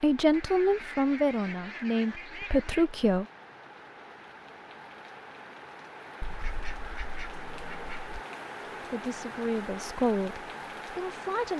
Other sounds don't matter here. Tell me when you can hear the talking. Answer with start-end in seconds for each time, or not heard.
0.0-3.2, 8.8-11.5.